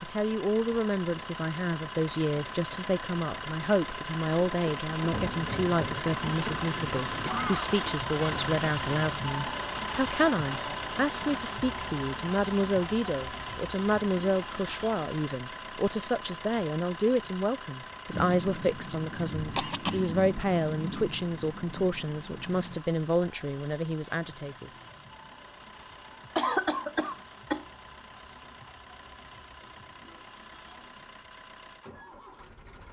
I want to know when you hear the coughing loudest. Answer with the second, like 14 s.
27 s.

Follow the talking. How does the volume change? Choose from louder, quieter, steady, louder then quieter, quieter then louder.
steady.